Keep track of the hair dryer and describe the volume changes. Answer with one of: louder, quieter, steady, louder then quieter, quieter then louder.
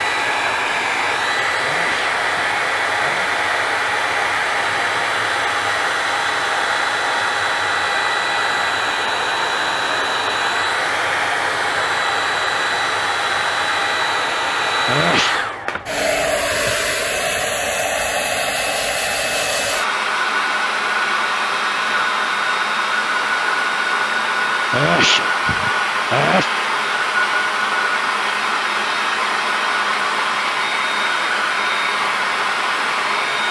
steady.